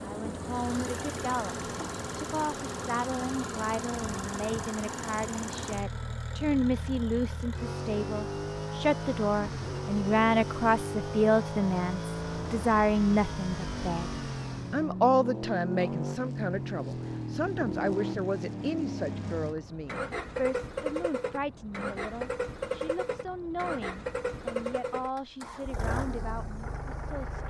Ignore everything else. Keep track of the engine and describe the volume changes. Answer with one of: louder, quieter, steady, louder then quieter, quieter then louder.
steady.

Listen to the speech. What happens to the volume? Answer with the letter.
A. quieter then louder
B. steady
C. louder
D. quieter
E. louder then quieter
E.